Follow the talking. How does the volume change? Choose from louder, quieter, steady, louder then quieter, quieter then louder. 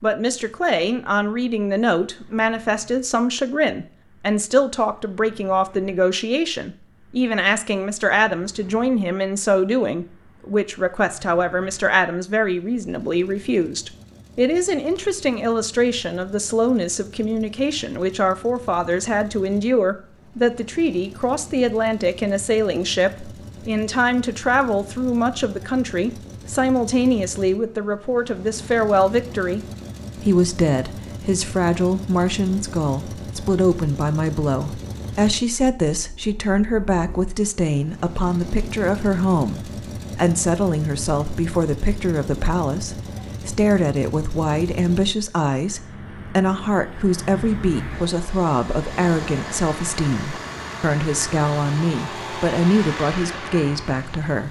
steady.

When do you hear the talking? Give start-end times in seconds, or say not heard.
0.0-54.4.